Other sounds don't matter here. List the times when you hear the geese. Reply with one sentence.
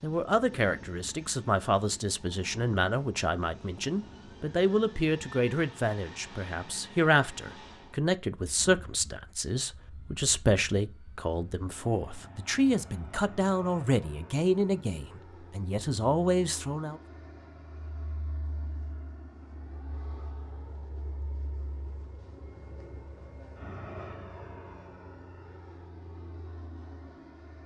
You can't hear the geese here.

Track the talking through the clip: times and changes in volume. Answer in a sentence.
The talking can be heard from 0.0 to 17.0 s, at a steady volume.